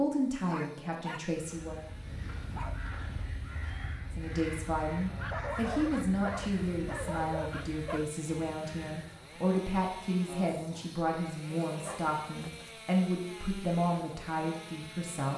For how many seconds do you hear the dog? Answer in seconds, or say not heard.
6 s.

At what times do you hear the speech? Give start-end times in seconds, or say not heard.
0.0-1.8, 4.2-15.3.